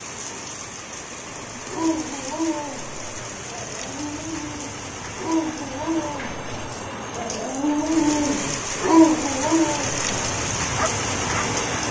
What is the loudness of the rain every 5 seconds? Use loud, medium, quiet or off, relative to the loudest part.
medium, medium, loud.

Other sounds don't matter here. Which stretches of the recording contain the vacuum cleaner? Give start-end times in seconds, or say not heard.
not heard.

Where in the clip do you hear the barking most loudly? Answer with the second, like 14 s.
9 s.